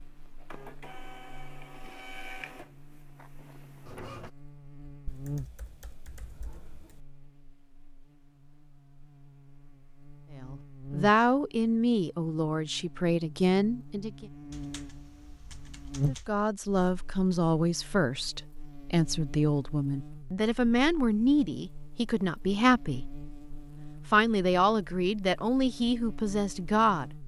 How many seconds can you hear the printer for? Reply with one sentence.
The printer can be heard for 4 seconds in total.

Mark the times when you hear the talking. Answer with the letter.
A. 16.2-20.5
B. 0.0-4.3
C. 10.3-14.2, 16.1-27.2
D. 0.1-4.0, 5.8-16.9
C.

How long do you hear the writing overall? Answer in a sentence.
The writing can't be heard in this clip.